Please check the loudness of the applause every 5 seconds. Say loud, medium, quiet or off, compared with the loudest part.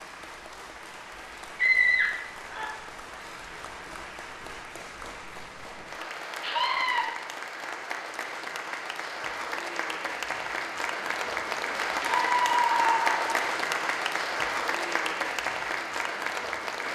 quiet, medium, loud, loud.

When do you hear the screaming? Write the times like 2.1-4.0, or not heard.
1.6-2.6, 6.4-7.0, 12.0-13.3.